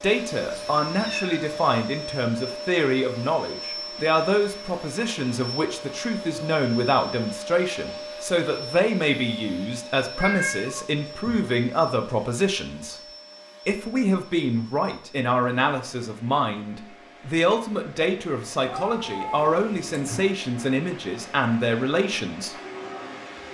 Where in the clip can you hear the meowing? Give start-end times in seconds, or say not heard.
0.5-1.5, 10.1-11.4, 18.6-20.3.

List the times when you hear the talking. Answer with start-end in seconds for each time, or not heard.
0.0-13.0, 13.7-22.6.